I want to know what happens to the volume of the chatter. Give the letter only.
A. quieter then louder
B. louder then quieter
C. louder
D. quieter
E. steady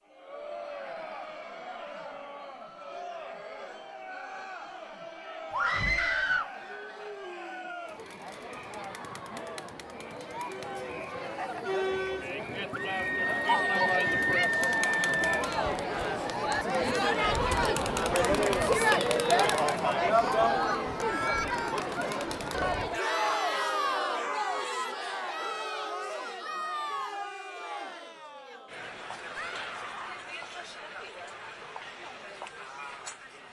B.